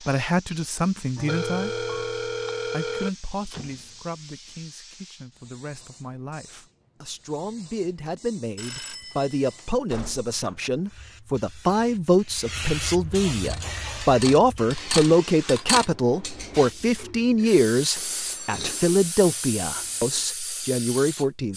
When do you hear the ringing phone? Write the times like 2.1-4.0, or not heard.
1.1-3.1, 8.6-9.8, 17.9-18.9.